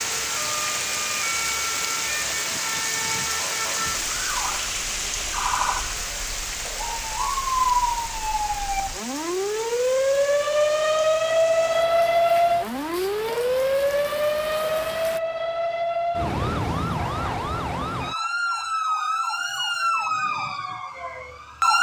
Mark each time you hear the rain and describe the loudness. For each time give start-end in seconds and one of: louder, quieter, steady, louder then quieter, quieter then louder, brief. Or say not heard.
0.0-15.2 quieter.